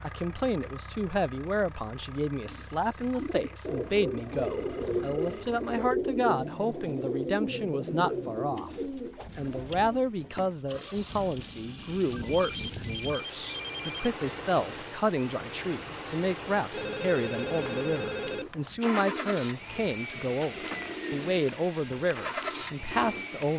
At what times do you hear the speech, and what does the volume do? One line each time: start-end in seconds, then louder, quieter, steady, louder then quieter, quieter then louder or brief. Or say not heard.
0.0-23.5 steady.